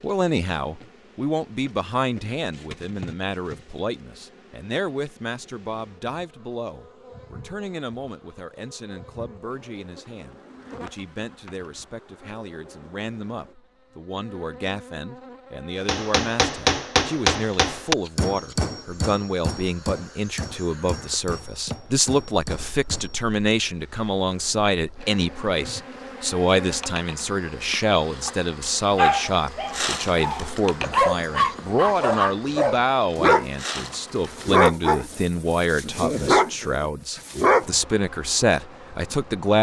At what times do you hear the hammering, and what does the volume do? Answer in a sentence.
You can hear the hammering from 15.8 to 23.2 s, getting quieter.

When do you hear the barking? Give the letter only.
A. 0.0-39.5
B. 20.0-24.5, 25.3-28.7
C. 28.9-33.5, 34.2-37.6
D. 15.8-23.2
C.